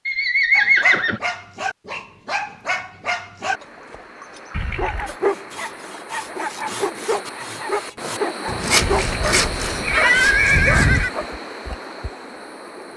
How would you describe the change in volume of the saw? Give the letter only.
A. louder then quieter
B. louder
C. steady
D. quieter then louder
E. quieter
A.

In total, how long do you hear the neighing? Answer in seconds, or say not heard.
4 s.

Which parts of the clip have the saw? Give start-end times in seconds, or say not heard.
5.0-11.0.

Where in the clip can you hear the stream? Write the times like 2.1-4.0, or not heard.
3.4-12.9.